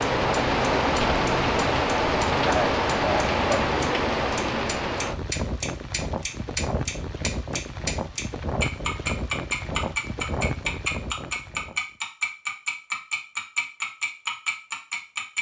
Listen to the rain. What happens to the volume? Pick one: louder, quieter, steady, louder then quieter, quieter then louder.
quieter.